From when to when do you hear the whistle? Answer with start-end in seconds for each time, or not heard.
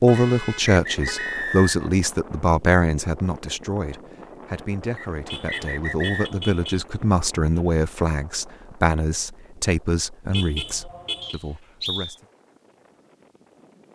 0.1-1.9, 5.0-6.3, 11.2-12.2.